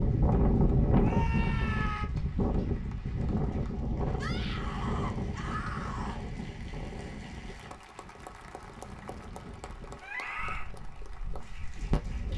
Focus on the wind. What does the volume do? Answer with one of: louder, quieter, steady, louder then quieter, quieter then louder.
quieter.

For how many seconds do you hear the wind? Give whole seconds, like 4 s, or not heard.
12 s.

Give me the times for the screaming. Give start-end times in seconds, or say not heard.
1.0-2.1, 4.2-6.2, 10.0-10.7.